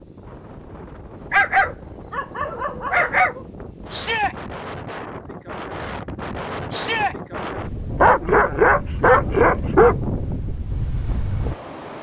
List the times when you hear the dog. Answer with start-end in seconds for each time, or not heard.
1.3-3.4, 8.0-9.9.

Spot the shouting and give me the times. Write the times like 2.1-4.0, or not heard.
3.9-4.3, 6.7-7.2.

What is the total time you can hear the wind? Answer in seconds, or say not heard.
12 s.